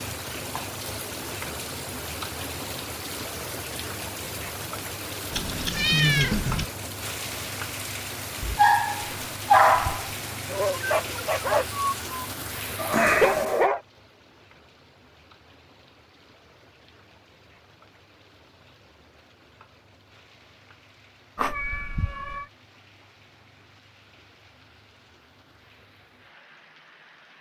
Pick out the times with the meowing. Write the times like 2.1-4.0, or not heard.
5.3-6.7, 12.9-13.7, 21.4-22.4.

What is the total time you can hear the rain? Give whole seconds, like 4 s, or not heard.
27 s.